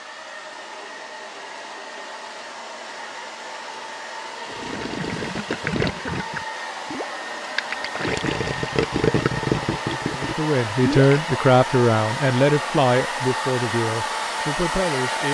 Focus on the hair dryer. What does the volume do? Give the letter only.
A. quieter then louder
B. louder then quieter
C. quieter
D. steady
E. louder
E.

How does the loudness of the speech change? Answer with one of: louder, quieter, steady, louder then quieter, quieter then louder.
quieter.